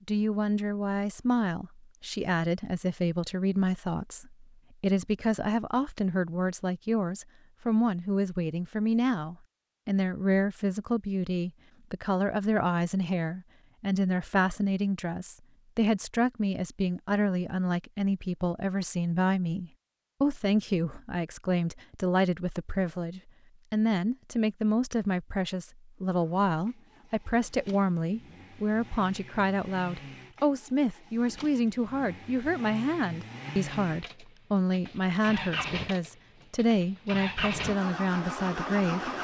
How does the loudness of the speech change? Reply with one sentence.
The loudness of the speech stays about the same.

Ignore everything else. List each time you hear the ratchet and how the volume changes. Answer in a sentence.
The ratchet can't be heard in this clip.